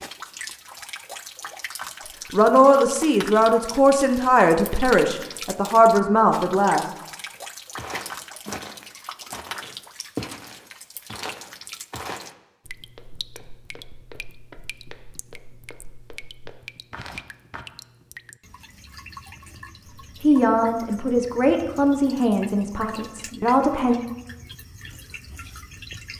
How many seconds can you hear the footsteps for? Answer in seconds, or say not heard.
10 s.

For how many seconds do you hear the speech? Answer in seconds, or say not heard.
8 s.